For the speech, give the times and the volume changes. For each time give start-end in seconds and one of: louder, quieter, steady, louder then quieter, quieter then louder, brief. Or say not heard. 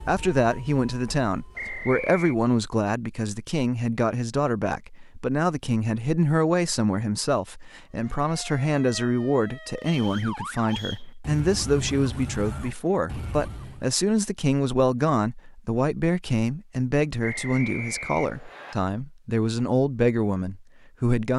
0.1-21.3 steady.